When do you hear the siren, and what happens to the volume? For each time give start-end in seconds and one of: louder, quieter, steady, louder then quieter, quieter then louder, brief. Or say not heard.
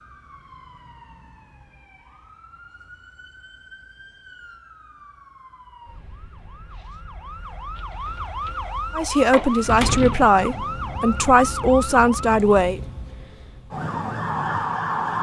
0.0-15.1 louder.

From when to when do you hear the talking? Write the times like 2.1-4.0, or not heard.
8.9-12.8.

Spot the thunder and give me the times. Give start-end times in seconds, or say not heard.
not heard.